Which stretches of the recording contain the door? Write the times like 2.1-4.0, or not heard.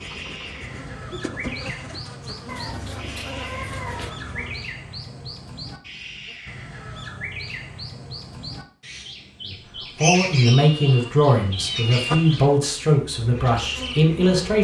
not heard.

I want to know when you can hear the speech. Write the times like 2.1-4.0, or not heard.
9.4-14.5.